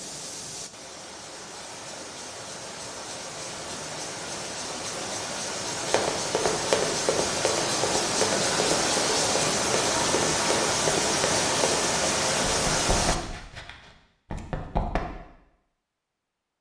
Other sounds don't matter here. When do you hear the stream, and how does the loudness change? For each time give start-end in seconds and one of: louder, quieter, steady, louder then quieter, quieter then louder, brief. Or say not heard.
0.0-13.2 louder.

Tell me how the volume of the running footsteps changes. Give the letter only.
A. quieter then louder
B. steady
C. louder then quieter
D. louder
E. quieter
E.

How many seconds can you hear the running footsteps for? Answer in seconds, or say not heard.
9 s.